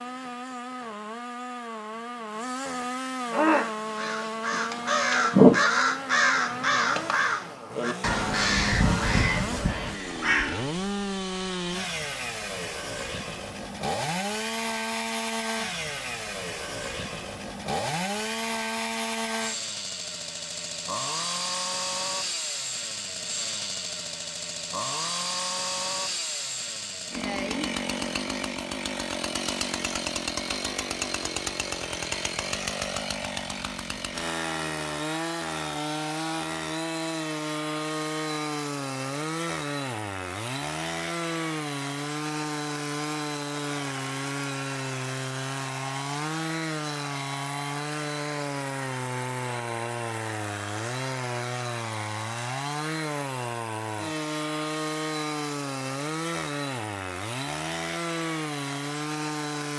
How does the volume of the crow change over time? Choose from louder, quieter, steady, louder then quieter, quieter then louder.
louder then quieter.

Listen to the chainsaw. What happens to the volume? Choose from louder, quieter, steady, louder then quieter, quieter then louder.
steady.